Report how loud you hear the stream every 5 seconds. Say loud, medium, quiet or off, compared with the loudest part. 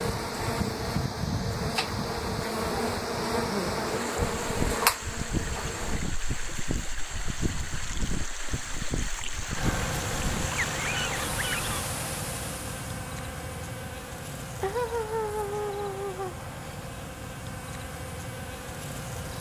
loud, loud, loud, off.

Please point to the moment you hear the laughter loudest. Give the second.
15 s.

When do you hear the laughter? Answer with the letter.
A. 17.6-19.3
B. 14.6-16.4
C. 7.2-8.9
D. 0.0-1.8
B.